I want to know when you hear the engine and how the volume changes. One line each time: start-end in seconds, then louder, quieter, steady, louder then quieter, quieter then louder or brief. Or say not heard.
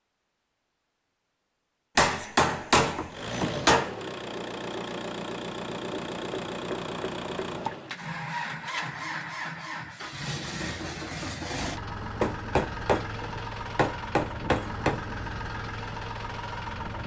3.1-17.0 steady.